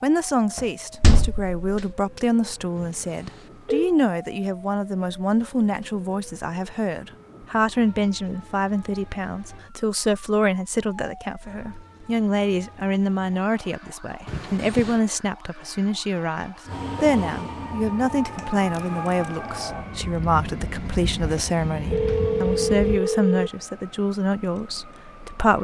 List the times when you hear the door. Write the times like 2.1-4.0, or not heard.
0.6-1.9.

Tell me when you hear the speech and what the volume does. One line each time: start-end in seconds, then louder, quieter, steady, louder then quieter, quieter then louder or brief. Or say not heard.
0.0-25.6 steady.